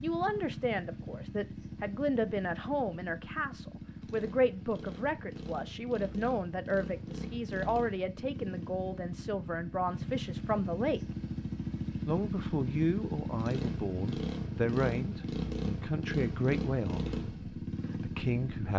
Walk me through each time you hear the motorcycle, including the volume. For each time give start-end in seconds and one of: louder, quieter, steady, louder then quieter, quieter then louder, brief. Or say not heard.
0.0-18.7 louder.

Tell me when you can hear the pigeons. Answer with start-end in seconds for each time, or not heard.
not heard.